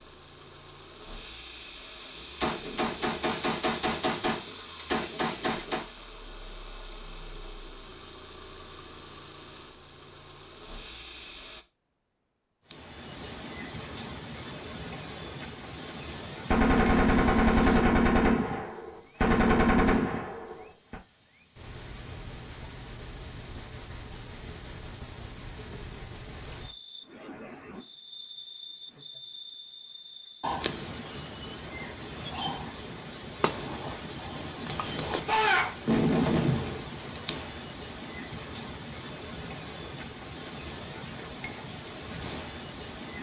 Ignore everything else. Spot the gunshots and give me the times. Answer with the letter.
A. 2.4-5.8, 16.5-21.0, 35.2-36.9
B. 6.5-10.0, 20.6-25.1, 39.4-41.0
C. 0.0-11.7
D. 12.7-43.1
A.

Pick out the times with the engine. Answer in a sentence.
You can hear the engine from 0.0 to 11.7 s.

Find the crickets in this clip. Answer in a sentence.
The crickets can be heard from 12.7 to 43.1 s.